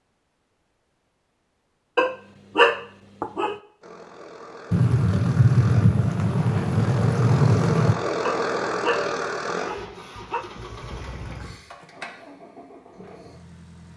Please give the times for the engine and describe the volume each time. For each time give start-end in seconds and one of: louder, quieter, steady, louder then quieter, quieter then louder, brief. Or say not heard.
3.8-13.9 louder then quieter.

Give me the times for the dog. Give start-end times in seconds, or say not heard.
1.9-3.5, 8.2-10.4.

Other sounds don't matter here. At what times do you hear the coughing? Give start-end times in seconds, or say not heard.
not heard.